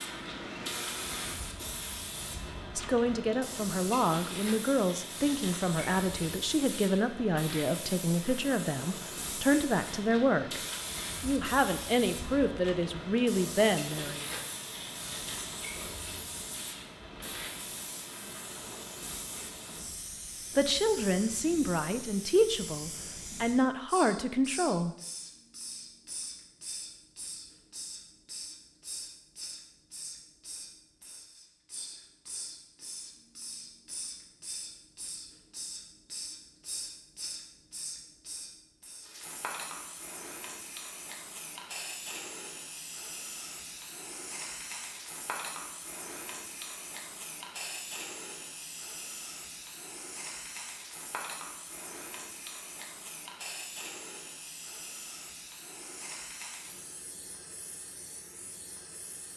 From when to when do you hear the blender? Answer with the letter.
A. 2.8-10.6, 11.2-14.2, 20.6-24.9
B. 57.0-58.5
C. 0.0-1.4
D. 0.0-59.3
C.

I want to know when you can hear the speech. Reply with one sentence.
You can hear the speech from 2.8 to 10.6 s, from 11.2 to 14.2 s and from 20.6 to 24.9 s.